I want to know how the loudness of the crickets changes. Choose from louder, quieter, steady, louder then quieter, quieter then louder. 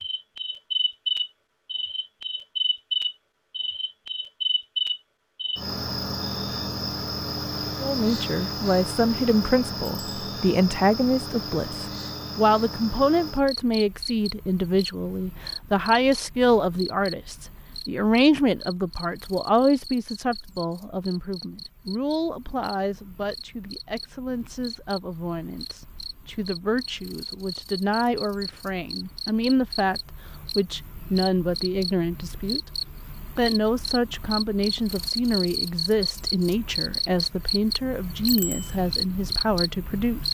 quieter then louder.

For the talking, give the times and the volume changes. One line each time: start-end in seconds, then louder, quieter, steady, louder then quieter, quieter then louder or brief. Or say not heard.
7.8-32.6 quieter then louder
33.4-40.2 steady.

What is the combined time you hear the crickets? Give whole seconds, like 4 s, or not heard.
40 s.